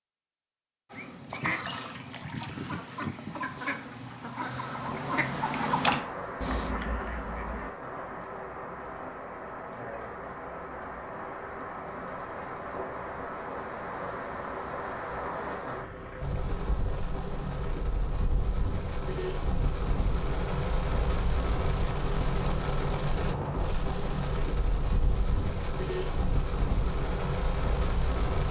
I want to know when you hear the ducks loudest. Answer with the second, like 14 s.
6 s.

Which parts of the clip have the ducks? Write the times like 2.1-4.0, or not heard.
0.9-7.7.